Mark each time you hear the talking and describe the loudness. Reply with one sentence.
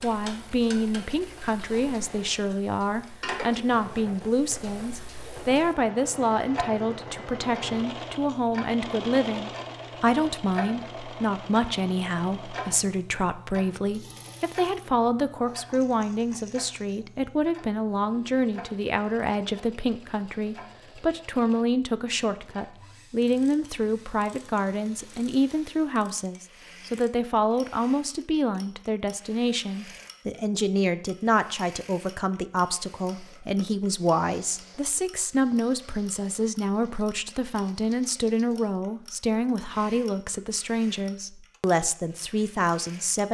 The talking can be heard from 0.0 to 43.2 s, at a steady volume.